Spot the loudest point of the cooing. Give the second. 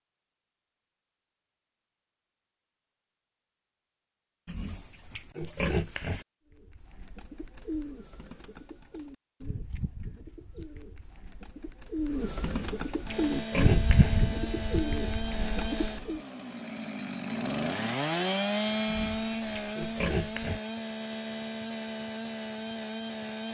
14 s.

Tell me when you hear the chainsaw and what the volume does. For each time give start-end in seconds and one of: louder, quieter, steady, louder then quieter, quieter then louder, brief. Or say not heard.
13.1-23.4 louder then quieter.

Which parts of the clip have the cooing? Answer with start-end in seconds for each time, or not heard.
6.5-16.2.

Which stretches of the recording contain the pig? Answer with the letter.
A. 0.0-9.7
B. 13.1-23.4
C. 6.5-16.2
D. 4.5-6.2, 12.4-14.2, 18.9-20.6
D.